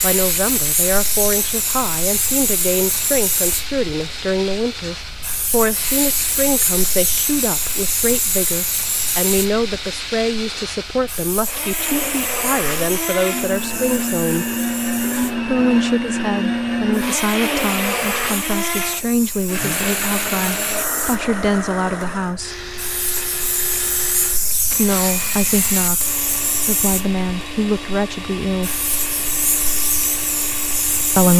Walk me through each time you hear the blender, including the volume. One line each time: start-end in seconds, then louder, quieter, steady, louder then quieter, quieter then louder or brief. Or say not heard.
0.0-31.3 louder then quieter.